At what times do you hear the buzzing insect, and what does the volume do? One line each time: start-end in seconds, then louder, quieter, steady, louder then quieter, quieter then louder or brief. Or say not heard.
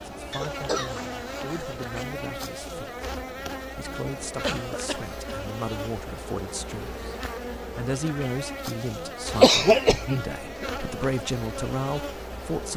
0.0-12.7 steady.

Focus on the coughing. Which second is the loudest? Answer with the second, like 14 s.
10 s.